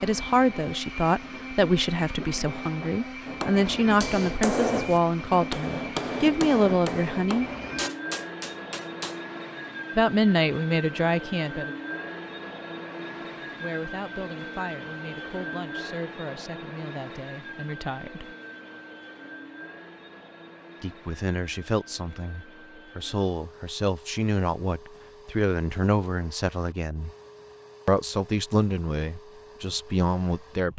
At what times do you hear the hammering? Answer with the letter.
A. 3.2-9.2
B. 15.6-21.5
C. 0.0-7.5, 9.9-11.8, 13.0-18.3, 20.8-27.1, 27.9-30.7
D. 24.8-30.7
A.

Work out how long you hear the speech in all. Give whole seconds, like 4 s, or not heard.
24 s.